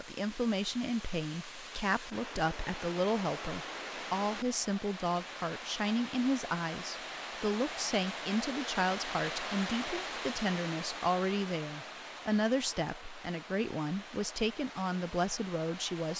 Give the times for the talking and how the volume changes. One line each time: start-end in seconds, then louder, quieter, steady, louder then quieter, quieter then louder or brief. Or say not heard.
0.0-16.1 steady.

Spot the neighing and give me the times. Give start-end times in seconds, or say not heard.
not heard.